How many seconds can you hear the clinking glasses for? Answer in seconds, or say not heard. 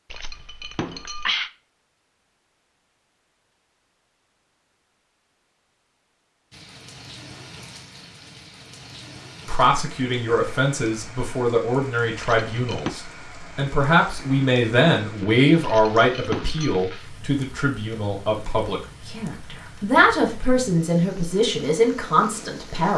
3 s.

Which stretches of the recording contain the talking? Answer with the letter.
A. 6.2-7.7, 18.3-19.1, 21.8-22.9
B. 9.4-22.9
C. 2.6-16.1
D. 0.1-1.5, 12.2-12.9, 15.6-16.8
B.